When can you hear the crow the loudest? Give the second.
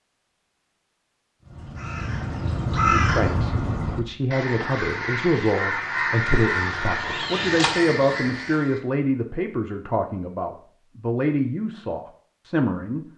3 s.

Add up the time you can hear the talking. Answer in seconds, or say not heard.
10 s.